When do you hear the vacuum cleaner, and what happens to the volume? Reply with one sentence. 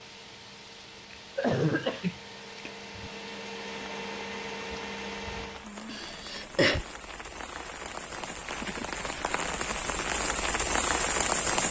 You can hear the vacuum cleaner from 0.0 to 5.7 s, getting louder.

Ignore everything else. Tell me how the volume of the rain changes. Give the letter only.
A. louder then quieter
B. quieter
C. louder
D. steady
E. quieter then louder
C.